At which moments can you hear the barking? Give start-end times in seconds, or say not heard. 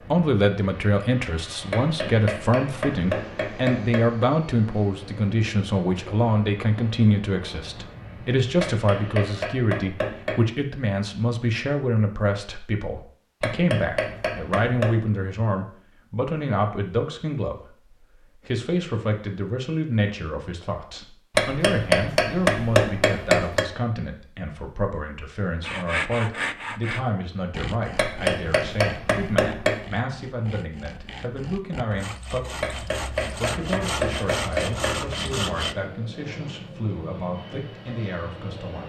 not heard.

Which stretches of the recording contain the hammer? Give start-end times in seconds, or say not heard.
1.7-4.2, 8.6-10.4, 13.4-14.9, 21.4-23.7, 27.9-29.9, 32.6-35.1.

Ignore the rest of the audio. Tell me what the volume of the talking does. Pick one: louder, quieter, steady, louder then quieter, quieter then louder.
quieter.